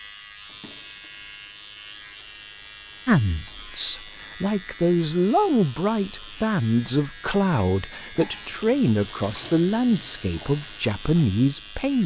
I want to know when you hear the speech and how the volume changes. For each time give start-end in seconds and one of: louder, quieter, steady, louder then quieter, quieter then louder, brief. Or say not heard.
3.0-12.0 steady.